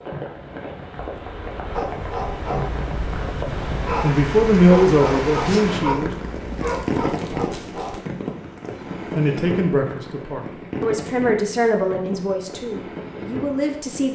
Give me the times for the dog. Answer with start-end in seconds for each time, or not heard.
1.7-8.0.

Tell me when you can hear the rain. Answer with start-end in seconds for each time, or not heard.
0.0-14.1.